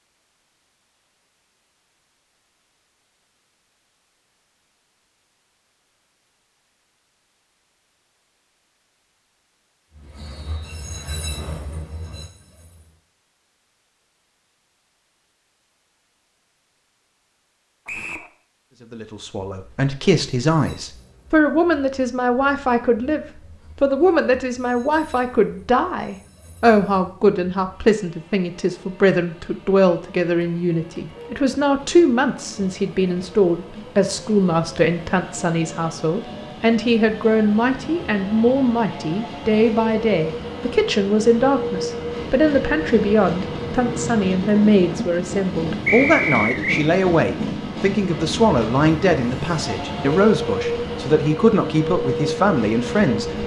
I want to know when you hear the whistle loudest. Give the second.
46 s.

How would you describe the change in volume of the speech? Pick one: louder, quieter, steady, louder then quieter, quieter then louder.
steady.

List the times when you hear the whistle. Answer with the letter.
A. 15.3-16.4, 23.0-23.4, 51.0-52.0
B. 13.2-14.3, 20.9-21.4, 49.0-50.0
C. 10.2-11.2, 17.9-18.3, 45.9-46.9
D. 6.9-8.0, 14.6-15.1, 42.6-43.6
C.